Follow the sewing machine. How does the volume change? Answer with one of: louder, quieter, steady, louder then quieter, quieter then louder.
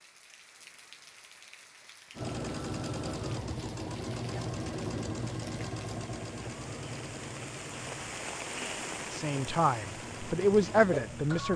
quieter then louder.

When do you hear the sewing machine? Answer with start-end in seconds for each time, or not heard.
2.1-11.5.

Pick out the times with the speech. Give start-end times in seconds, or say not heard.
9.1-11.5.